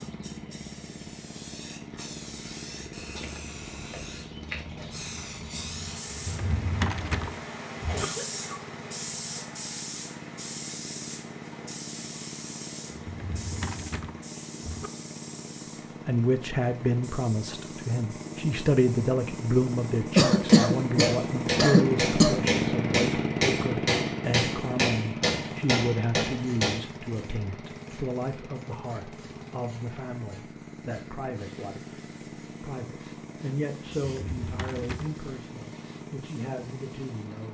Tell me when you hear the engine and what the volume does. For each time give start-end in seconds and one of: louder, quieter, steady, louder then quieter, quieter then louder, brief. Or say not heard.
0.0-37.4 louder then quieter.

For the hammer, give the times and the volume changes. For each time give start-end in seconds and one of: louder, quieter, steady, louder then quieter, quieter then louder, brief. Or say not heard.
20.4-26.8 steady.